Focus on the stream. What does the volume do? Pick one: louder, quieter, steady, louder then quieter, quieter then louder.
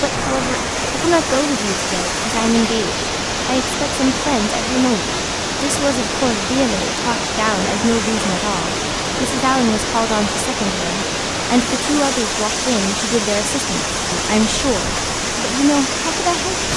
steady.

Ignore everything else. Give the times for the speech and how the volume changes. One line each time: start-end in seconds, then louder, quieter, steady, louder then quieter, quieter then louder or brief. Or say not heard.
0.0-16.7 steady.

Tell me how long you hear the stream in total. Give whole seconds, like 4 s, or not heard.
17 s.